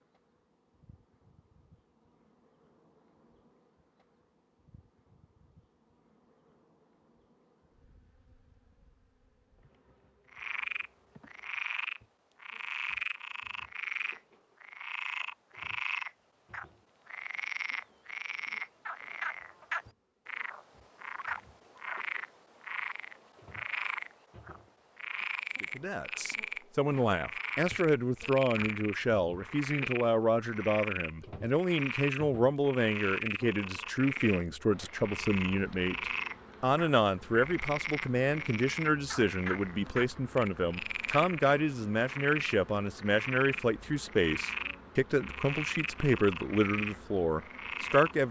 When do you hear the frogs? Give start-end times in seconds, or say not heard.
10.3-48.1.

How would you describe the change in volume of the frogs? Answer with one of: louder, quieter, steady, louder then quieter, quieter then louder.
steady.